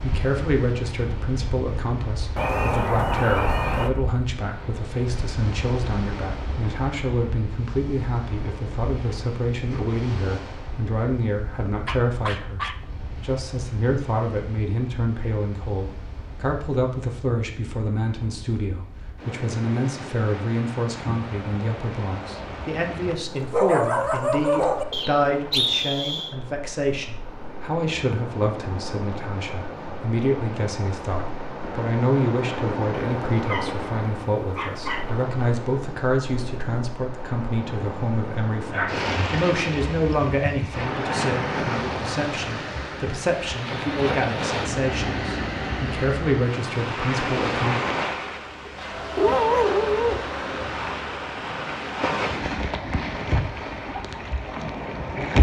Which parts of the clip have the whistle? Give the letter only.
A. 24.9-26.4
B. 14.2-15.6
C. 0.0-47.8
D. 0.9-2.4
A.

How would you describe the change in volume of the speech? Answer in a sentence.
The loudness of the speech stays about the same.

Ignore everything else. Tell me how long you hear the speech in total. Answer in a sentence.
The speech can be heard for 48 seconds in total.